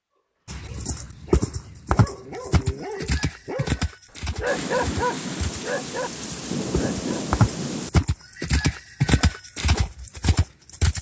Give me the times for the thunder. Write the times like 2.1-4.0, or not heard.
4.5-7.9.